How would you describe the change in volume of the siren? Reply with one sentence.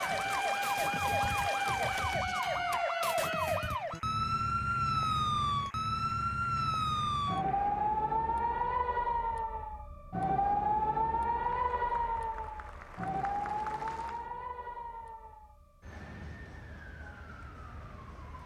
The volume of the siren goes down.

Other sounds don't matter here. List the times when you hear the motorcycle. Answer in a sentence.
The motorcycle can't be heard in this clip.